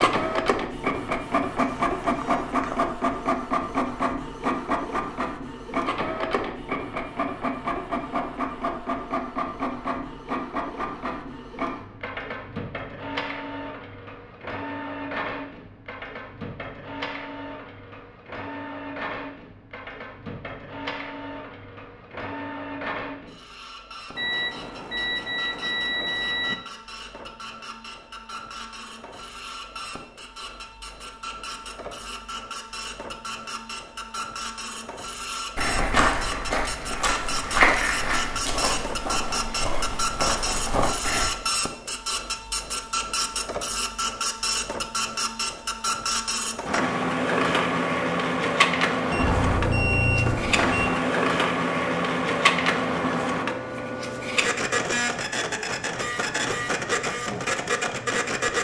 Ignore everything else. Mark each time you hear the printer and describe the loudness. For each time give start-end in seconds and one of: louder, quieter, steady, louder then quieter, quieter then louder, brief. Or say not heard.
0.0-58.5 quieter then louder.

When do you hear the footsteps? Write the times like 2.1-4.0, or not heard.
35.5-41.2.